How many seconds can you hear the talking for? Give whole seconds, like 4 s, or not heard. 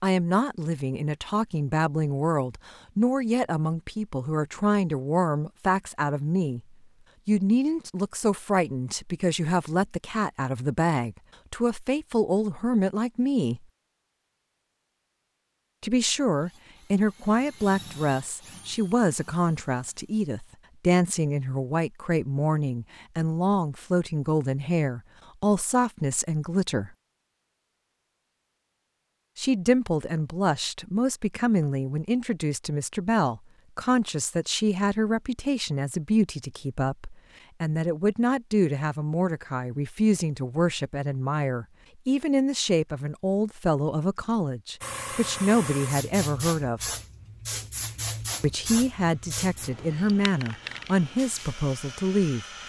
46 s.